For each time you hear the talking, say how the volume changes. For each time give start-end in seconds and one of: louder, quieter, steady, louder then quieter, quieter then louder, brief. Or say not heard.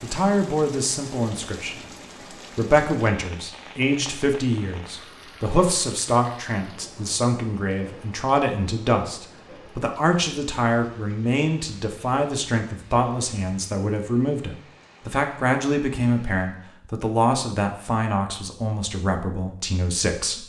0.0-20.4 steady.